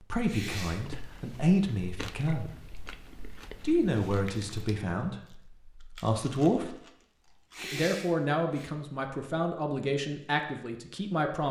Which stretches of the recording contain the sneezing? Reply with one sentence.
You can hear the sneezing from 0.2 to 0.8 s and from 7.5 to 8.7 s.